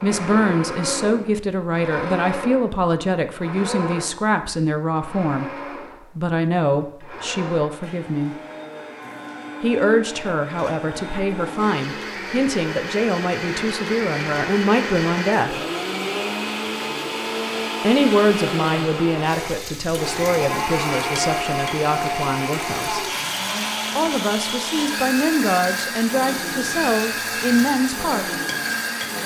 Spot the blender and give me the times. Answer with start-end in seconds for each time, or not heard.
0.0-29.2.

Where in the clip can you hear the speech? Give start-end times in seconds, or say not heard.
0.0-5.5, 6.2-8.3, 9.6-15.6, 17.8-23.1, 23.9-28.4.